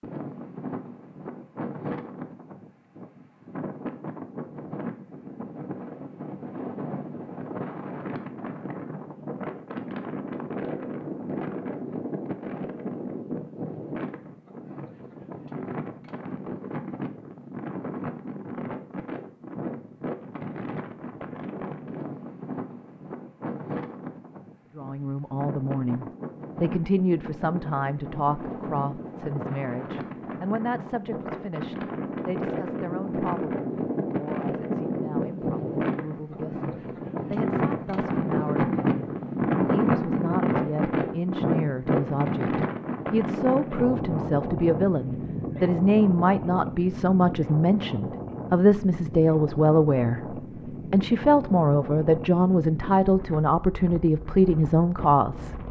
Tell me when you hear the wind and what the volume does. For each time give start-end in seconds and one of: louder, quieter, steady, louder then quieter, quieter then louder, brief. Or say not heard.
0.0-55.6 louder then quieter.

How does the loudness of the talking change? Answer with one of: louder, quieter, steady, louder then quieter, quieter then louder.
quieter then louder.